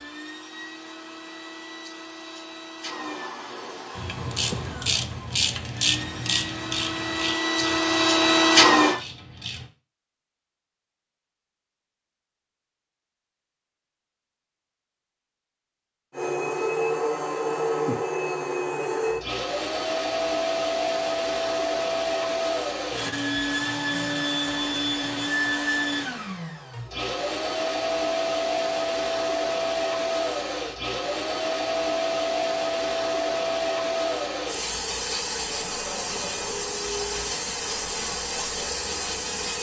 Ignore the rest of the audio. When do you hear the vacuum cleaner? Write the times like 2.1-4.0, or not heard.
0.0-9.0, 16.1-39.5.